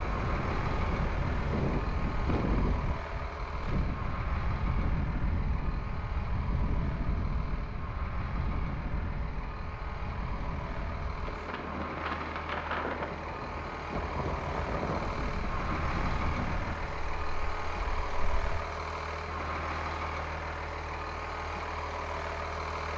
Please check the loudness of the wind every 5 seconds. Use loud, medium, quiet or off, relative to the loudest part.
loud, loud, loud, medium, off.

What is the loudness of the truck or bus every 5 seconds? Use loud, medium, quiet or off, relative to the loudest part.
loud, medium, loud, loud, loud.